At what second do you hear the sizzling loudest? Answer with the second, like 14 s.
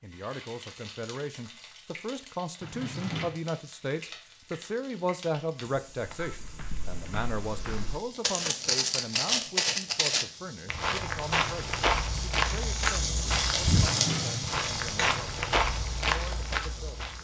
14 s.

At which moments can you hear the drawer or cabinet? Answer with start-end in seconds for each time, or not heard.
2.6-3.4, 13.7-14.7.